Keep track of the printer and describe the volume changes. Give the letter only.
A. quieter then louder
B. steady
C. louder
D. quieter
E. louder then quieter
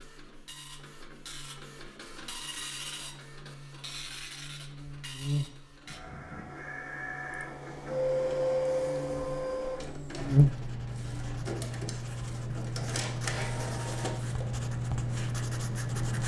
E.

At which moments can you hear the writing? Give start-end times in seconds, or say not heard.
10.2-16.2.